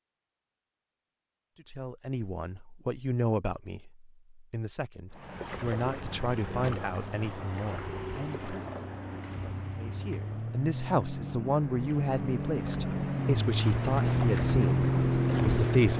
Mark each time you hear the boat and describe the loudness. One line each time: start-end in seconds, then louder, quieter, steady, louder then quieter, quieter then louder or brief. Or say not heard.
5.1-15.9 louder.